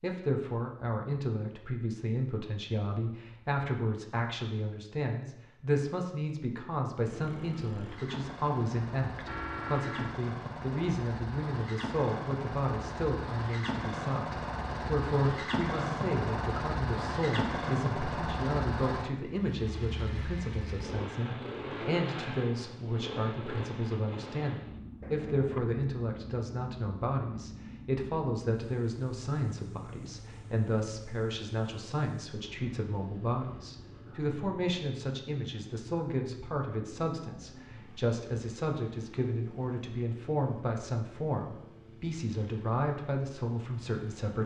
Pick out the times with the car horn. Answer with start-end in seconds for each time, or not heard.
9.2-10.2, 25.0-25.6.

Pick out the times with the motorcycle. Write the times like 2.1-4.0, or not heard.
7.0-44.4.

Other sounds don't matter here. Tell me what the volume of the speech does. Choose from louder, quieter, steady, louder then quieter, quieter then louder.
steady.